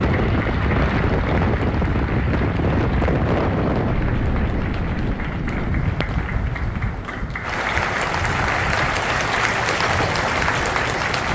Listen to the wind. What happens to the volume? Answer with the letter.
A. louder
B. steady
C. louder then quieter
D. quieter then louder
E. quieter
E.